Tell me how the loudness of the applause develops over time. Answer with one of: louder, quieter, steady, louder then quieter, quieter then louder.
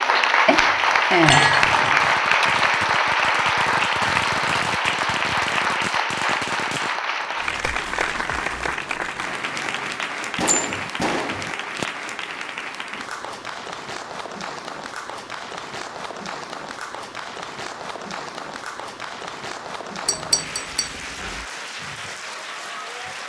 quieter.